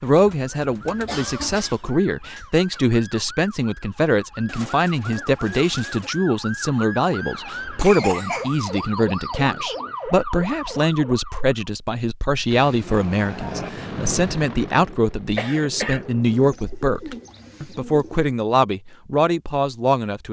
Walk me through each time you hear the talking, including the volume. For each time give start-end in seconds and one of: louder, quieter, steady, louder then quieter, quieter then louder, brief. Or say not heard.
0.0-20.2 steady.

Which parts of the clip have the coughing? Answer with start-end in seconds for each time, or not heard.
1.1-2.8, 7.8-8.6, 15.3-16.1.